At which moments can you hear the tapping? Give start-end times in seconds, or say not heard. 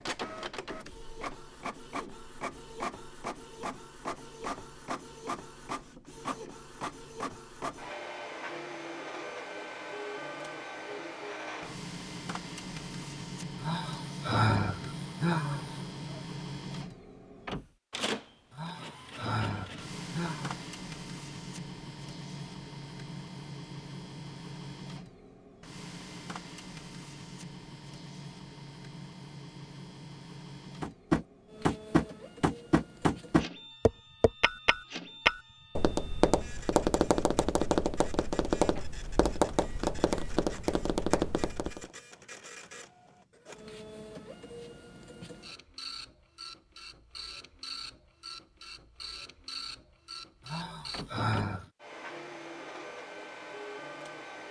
30.8-41.9.